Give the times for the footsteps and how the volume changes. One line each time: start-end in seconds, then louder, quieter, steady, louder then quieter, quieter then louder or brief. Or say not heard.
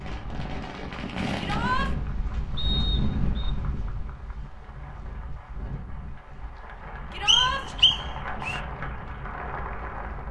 not heard.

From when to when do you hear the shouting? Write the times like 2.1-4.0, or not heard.
1.4-1.9, 7.1-7.7.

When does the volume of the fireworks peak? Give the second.
1 s.